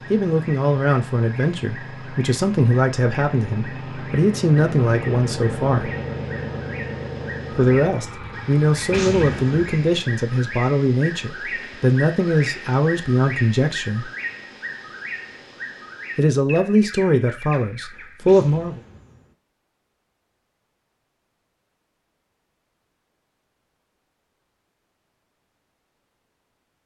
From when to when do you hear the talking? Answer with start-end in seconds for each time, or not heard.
0.1-5.9, 7.5-14.1, 16.1-18.8.